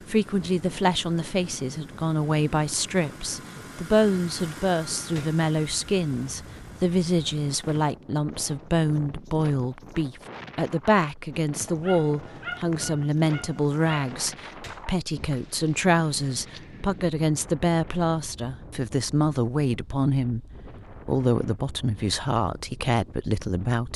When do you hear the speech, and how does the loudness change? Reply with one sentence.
The speech can be heard from 0.1 to 23.9 s, at a steady volume.